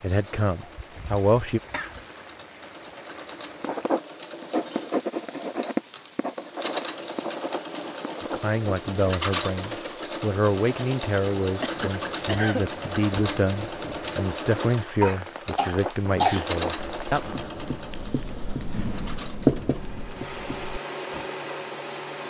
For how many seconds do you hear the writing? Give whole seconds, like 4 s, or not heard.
11 s.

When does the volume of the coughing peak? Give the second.
16 s.